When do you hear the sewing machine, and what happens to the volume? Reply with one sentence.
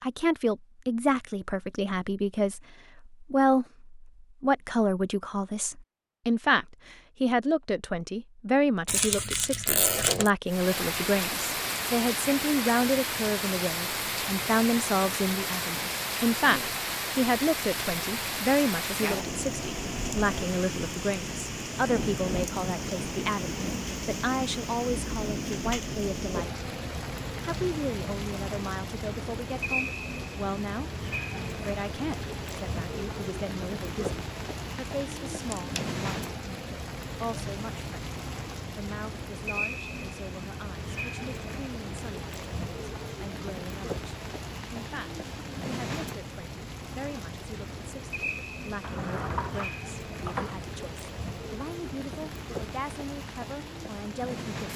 You can't hear the sewing machine here.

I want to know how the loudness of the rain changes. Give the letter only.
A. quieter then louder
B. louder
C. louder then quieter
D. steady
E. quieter
E.